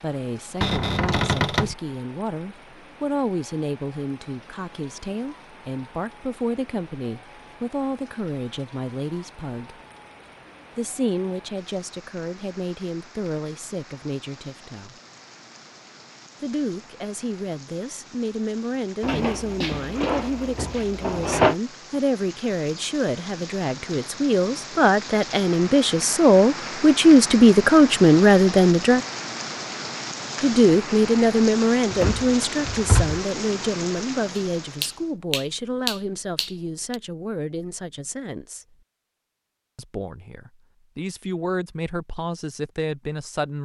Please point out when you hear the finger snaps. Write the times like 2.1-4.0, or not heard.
34.4-37.0.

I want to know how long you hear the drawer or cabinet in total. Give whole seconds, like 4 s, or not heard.
5 s.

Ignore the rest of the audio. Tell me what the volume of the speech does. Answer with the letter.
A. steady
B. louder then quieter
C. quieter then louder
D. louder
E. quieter
B.